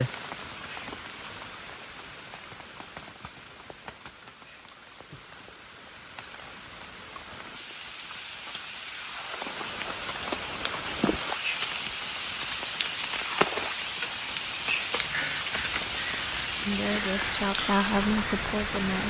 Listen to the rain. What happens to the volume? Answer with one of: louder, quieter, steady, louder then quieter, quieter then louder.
louder.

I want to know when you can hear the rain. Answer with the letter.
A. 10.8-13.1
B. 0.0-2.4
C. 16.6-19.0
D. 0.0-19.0
D.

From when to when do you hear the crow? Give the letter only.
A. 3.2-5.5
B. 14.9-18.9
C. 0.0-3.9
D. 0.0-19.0
B.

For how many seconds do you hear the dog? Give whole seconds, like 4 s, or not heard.
not heard.